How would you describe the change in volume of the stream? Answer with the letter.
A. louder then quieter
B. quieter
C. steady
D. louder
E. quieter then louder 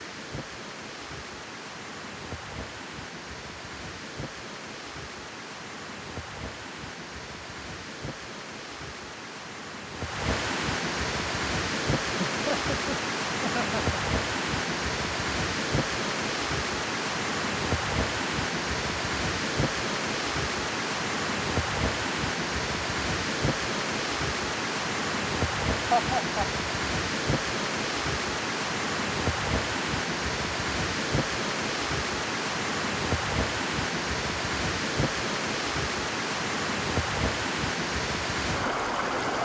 D.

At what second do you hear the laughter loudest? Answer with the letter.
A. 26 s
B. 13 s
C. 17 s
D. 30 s
A.